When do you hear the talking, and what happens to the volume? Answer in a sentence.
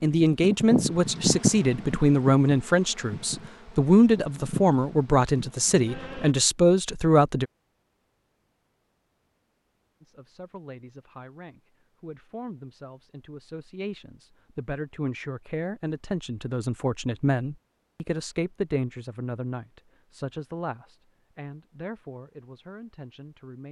You can hear the talking from 0.0 to 7.5 s, at a steady volume; and from 10.0 to 23.6 s, getting louder then quieter.